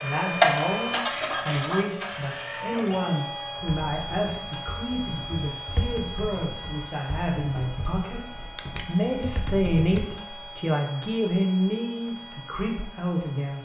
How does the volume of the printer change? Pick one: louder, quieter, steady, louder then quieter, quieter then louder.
quieter.